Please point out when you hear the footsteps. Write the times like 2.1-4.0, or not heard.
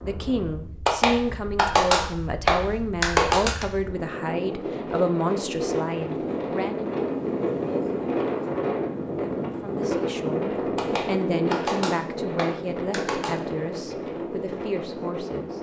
not heard.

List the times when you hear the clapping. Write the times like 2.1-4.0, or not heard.
0.8-3.6, 10.8-13.4.